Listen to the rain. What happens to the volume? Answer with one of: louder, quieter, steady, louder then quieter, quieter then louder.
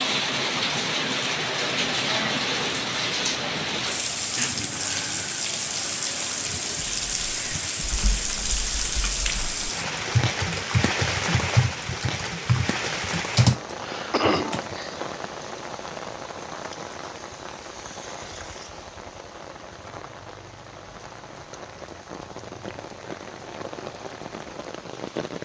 quieter.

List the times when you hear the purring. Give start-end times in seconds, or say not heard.
not heard.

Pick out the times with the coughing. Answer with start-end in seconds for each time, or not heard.
14.1-15.0.